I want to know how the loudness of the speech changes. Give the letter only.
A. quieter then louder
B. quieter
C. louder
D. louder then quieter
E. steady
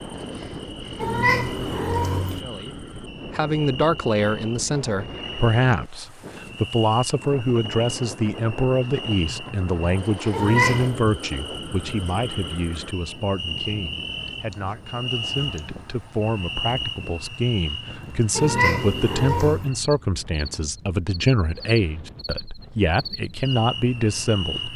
A.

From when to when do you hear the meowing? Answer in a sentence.
The meowing can be heard from 1.0 to 2.4 s, from 10.3 to 11.0 s and from 18.4 to 19.7 s.